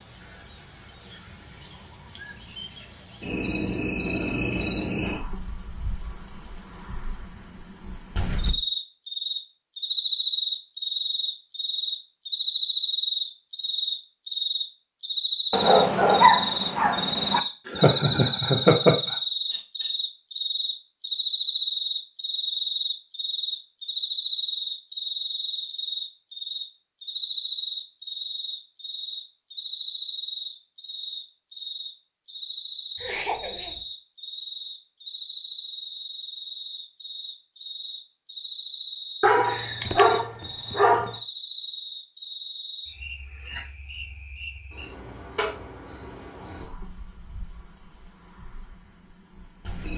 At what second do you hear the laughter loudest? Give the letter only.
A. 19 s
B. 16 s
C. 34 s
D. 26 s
A.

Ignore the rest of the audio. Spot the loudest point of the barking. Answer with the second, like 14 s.
16 s.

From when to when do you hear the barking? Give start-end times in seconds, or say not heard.
15.5-17.4, 39.2-41.1.